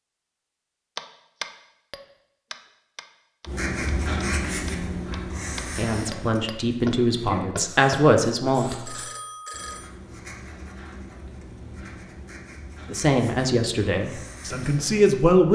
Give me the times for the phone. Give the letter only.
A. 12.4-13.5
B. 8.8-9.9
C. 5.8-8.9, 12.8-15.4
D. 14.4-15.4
B.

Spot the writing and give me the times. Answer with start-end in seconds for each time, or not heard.
3.5-15.1.